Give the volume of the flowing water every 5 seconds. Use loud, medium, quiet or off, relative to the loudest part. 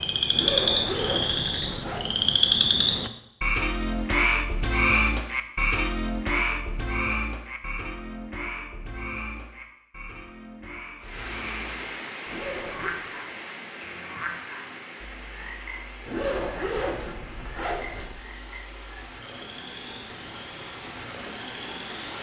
off, off, loud, medium, loud.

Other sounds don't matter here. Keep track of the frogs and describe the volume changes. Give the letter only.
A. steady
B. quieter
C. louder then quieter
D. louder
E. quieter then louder
B.